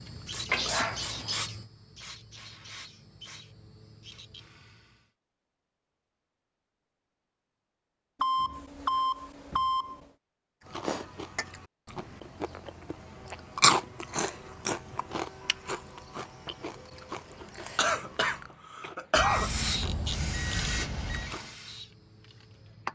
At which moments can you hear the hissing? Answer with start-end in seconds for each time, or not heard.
0.0-5.0, 19.2-22.9.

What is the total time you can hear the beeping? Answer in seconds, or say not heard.
5 s.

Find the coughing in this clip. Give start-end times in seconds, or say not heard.
17.8-19.5.